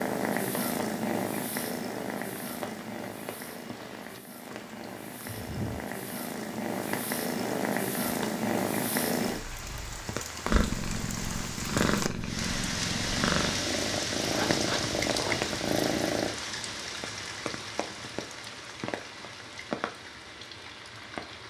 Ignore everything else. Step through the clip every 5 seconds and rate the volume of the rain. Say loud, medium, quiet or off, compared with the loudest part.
quiet, medium, loud, loud, medium.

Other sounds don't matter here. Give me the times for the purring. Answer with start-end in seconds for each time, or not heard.
0.0-16.4.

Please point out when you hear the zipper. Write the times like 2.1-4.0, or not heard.
14.3-15.6.